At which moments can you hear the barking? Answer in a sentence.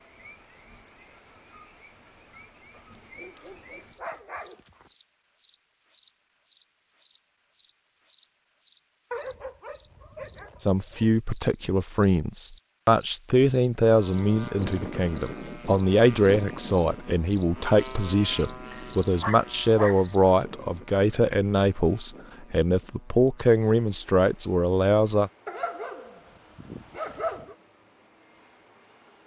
You can hear the barking from 2.7 to 4.9 s, from 9.1 to 11.1 s, from 18.7 to 20.1 s and from 25.4 to 27.6 s.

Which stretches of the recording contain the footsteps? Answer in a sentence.
The footsteps can't be heard in this clip.